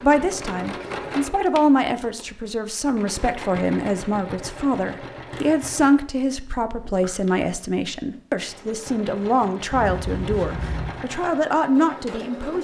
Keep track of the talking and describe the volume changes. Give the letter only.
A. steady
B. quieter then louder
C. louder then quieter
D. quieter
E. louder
A.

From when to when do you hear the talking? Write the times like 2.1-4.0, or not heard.
0.0-12.6.